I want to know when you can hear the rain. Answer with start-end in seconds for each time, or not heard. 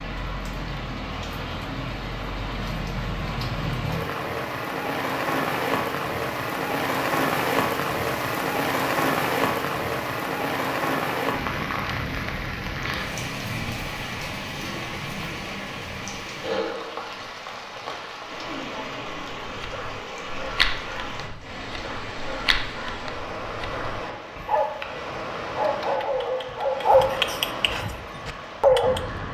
0.0-29.2.